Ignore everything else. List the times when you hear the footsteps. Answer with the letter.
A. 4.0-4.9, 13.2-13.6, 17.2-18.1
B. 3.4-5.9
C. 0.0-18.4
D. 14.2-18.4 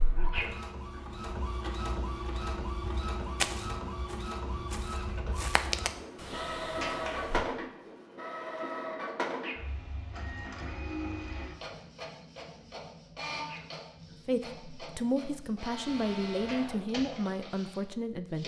B.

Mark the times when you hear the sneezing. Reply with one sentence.
The sneezing can be heard from 0.1 to 1.0 s, from 9.2 to 9.7 s and from 13.3 to 14.2 s.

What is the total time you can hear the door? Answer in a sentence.
You can hear the door for 2 seconds altogether.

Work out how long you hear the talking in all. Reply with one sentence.
You can hear the talking for 4 seconds altogether.